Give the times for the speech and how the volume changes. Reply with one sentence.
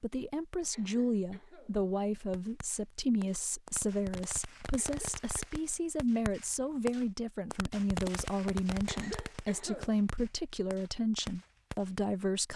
The speech can be heard from 0.0 to 12.5 s, at a steady volume.